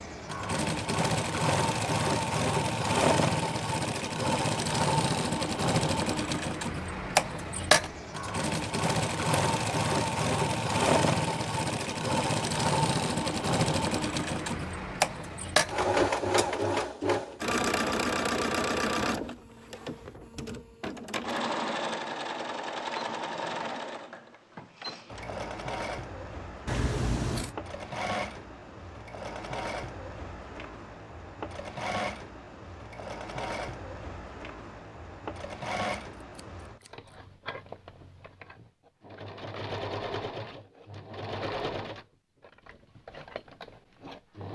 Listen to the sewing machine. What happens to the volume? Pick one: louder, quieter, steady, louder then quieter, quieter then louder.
quieter.